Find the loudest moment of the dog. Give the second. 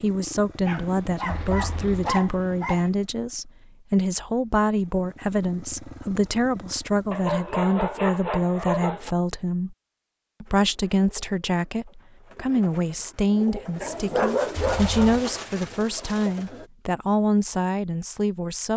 14 s.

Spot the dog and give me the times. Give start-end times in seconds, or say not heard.
0.7-2.9, 7.1-9.1, 13.8-15.2.